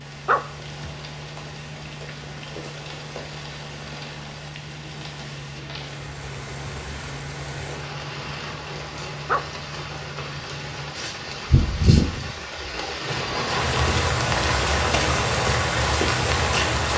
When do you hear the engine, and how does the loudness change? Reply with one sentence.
You can hear the engine from 0.0 to 11.0 s, at a steady volume.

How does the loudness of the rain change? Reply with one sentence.
The loudness of the rain goes up.